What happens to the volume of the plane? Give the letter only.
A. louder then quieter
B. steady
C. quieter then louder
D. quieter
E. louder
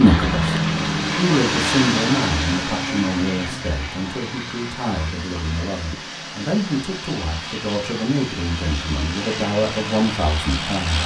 C.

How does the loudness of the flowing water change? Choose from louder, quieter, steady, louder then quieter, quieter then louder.
quieter.